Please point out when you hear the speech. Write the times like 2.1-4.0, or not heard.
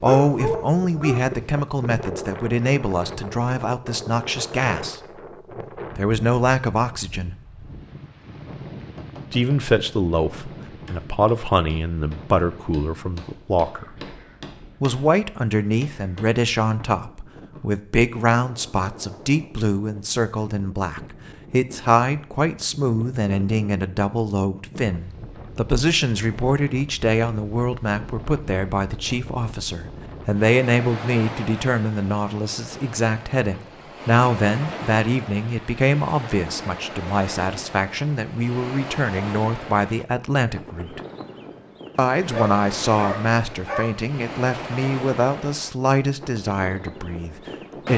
0.0-5.0, 6.0-7.3, 9.3-13.9, 14.8-41.0, 42.0-47.9.